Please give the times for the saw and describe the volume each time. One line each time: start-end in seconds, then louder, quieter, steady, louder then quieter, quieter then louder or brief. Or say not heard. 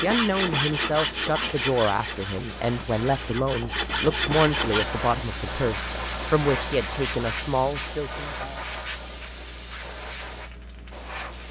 0.0-4.8 quieter then louder.